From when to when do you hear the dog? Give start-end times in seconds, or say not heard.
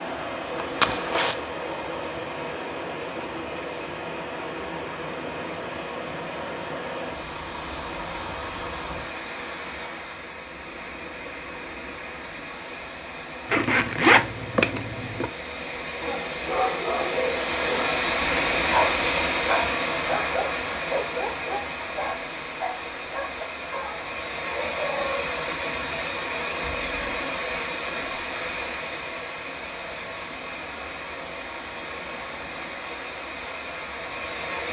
15.8-25.2.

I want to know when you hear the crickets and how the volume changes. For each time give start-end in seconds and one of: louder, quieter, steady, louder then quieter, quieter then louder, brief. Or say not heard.
not heard.